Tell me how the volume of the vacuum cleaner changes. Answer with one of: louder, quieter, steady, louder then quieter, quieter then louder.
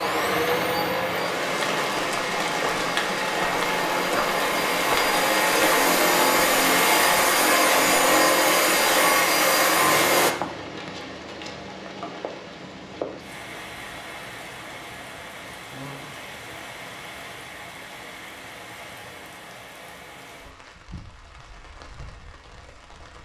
louder.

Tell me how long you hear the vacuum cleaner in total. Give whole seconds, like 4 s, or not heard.
10 s.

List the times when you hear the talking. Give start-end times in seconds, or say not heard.
not heard.